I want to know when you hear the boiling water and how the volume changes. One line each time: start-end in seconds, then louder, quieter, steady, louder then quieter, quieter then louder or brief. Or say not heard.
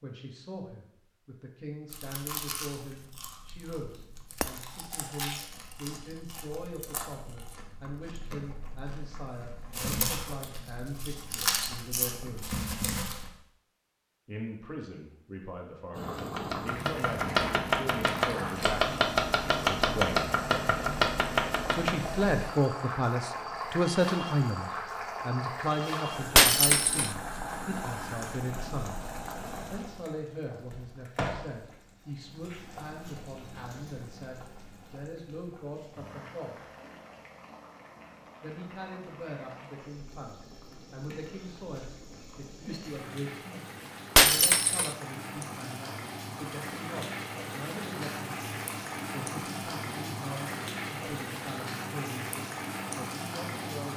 15.9-53.9 quieter then louder.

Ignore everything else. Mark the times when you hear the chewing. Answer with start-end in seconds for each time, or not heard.
1.9-13.3.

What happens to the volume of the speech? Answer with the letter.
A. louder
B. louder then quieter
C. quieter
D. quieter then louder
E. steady
B.